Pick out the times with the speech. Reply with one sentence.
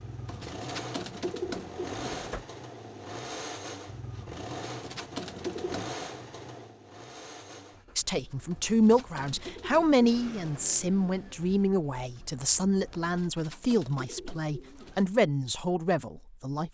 You can hear the speech from 8.0 to 16.7 s.